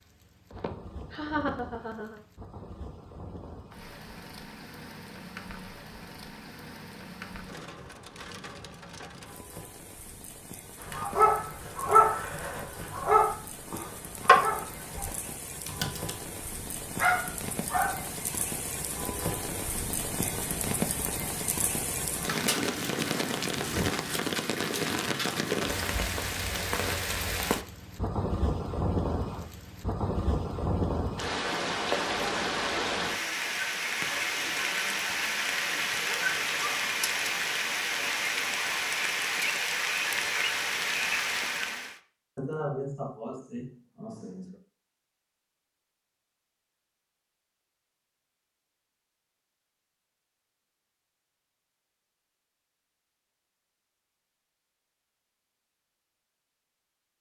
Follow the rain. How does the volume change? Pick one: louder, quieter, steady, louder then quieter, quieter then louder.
louder.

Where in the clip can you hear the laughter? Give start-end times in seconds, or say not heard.
0.5-2.2, 42.4-44.5.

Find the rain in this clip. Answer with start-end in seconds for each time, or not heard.
0.0-42.0.